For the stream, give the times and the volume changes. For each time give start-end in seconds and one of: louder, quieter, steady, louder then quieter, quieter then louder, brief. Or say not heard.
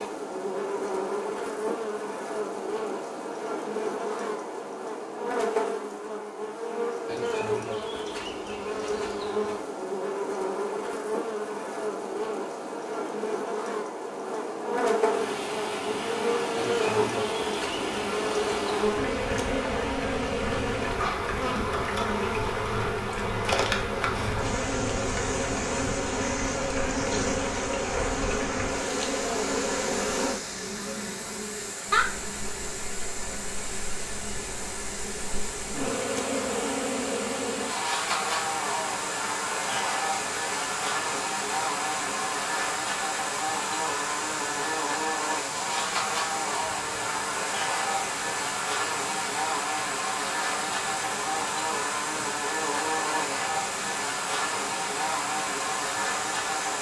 15.0-56.7 steady.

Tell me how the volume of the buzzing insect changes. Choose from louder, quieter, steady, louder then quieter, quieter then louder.
steady.